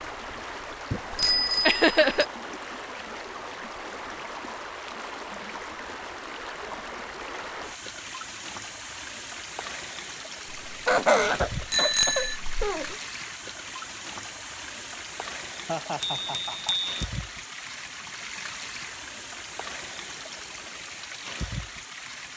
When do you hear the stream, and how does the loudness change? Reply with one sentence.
You can hear the stream from 0.0 to 22.3 s, at a steady volume.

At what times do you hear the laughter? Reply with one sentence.
The laughter can be heard from 1.6 to 2.2 s, from 10.5 to 12.9 s and from 15.7 to 16.9 s.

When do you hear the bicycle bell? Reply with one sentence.
The bicycle bell can be heard from 0.9 to 2.2 s, from 11.7 to 12.3 s and from 16.0 to 17.1 s.